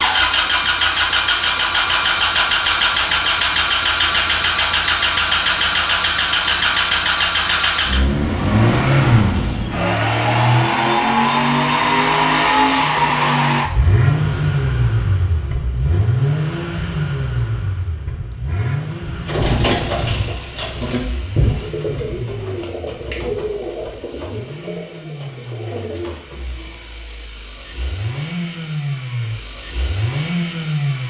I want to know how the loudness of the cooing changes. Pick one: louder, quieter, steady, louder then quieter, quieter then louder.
quieter.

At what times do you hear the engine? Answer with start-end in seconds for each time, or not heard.
0.0-31.0.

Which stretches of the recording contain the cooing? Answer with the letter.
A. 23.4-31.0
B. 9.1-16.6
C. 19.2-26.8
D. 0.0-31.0
C.